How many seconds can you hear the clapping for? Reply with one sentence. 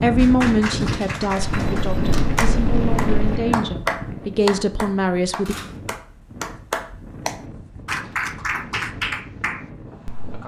You can hear the clapping for 10 seconds altogether.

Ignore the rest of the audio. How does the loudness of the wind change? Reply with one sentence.
The volume of the wind goes down.